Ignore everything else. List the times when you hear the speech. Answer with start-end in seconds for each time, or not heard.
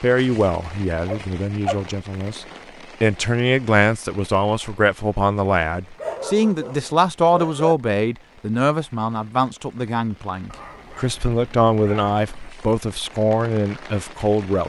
0.0-14.6.